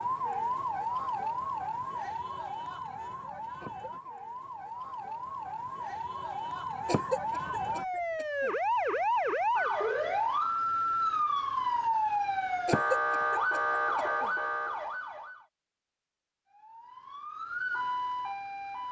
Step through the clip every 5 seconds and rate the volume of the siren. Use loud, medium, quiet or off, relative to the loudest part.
medium, loud, loud, medium.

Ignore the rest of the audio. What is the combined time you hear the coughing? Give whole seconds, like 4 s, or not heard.
4 s.